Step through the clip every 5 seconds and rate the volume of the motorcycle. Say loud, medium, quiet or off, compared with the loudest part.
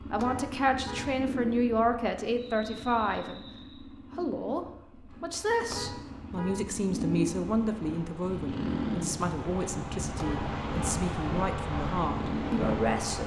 medium, loud, loud.